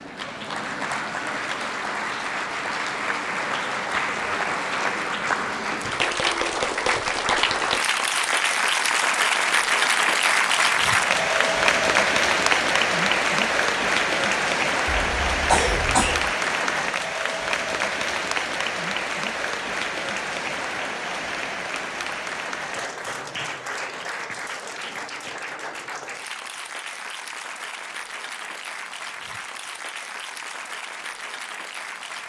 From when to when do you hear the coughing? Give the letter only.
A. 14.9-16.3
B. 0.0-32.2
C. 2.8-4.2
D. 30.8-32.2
A.